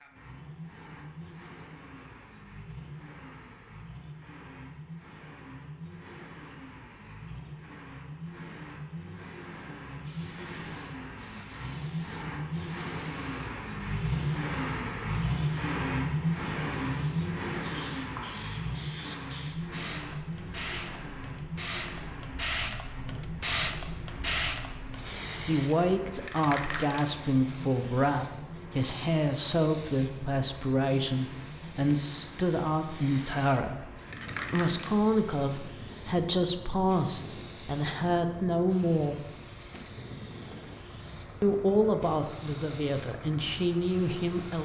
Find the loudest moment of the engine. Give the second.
16 s.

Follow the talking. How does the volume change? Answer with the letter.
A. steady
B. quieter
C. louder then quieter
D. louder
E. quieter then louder
A.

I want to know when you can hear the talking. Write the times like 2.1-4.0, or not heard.
25.4-33.9, 34.5-39.2, 41.4-44.6.